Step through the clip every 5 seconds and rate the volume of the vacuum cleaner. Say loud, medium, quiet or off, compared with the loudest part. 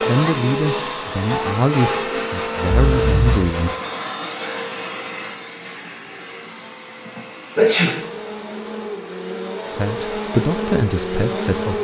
loud, medium, loud.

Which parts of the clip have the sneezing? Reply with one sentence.
The sneezing can be heard from 2.8 to 3.4 s and from 7.2 to 8.0 s.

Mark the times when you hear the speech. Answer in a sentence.
You can hear the speech from 0.1 to 3.8 s and from 9.7 to 11.7 s.